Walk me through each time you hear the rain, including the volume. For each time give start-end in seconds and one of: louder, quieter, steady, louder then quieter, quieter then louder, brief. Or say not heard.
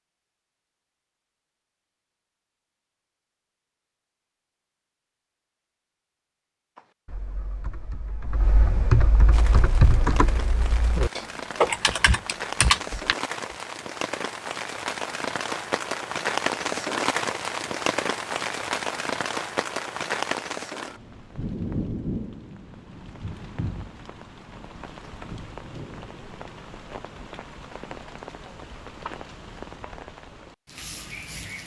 9.3-31.6 louder then quieter.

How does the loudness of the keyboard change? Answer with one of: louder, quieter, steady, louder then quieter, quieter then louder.
louder.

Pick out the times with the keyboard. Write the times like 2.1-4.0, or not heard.
6.8-13.2.